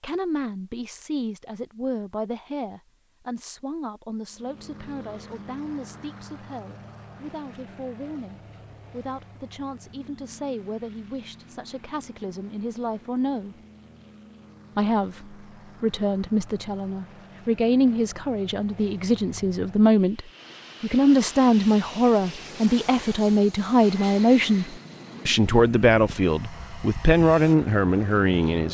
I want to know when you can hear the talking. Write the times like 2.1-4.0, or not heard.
0.0-13.6, 14.8-28.6.